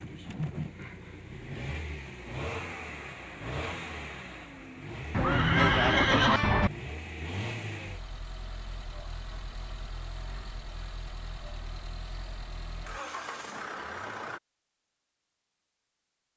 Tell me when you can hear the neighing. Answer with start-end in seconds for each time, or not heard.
5.1-6.7.